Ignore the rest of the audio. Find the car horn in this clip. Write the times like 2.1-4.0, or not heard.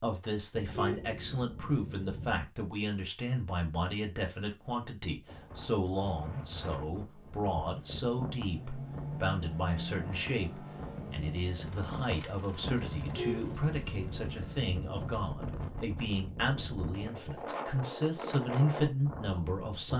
0.5-2.5, 12.9-14.8.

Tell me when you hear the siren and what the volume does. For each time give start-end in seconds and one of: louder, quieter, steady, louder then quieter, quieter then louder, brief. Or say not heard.
not heard.